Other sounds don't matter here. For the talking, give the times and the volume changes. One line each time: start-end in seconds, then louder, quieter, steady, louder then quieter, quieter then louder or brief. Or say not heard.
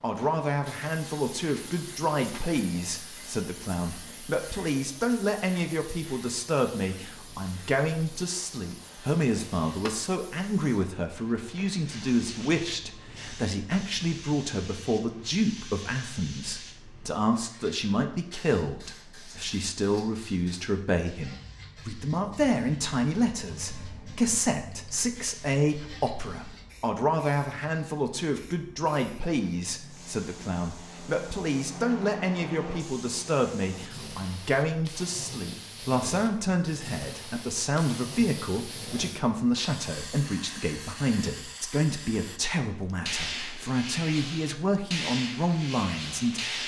0.0-46.6 steady.